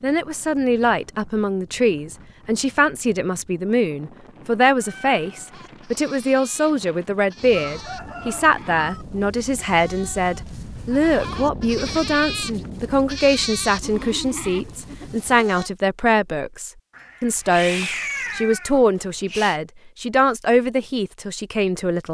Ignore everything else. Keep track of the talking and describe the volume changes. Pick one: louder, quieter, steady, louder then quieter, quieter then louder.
steady.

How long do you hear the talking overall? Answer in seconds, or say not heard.
22 s.